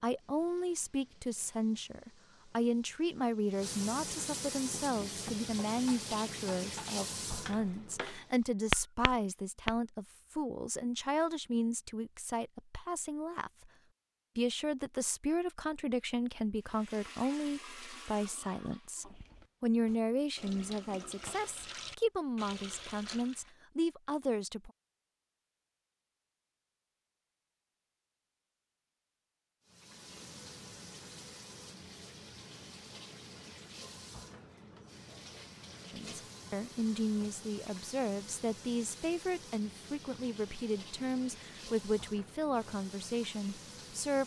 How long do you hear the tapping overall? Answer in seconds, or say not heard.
5 s.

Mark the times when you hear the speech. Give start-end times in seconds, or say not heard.
0.0-13.7, 14.3-24.7, 35.9-44.2.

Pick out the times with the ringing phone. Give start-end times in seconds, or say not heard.
not heard.